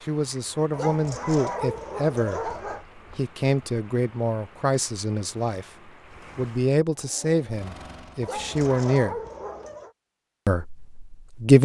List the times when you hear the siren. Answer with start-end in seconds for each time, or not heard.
not heard.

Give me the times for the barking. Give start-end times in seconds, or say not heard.
0.7-2.9, 8.2-9.9.